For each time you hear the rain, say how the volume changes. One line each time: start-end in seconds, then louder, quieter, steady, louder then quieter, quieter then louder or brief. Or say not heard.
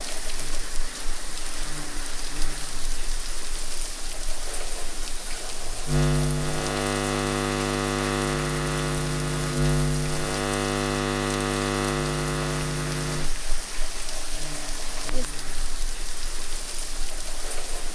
0.0-17.9 steady.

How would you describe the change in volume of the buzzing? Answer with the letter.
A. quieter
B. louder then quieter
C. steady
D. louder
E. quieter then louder
B.